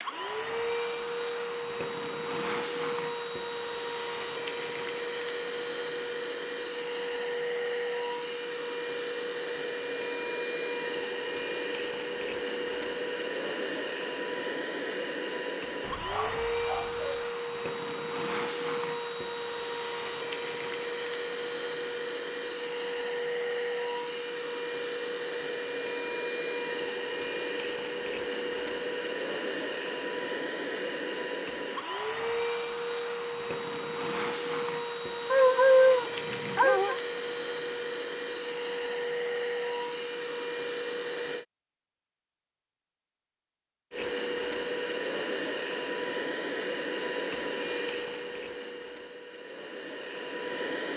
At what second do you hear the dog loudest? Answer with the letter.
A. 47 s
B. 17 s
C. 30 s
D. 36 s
D.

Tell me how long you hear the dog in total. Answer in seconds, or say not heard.
3 s.